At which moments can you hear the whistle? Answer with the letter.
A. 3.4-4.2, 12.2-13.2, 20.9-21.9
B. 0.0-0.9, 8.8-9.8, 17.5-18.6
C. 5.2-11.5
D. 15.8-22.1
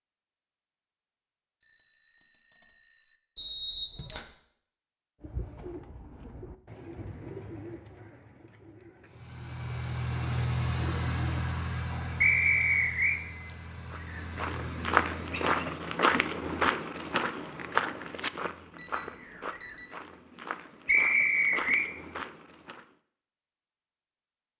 A.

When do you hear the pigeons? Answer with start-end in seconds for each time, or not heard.
5.2-11.5.